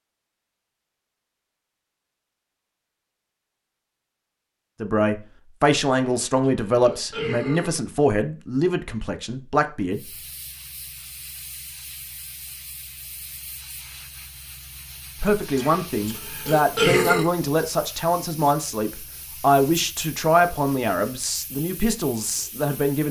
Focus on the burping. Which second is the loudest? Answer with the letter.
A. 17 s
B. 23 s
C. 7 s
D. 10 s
A.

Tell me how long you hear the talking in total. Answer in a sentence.
The talking can be heard for 13 seconds in total.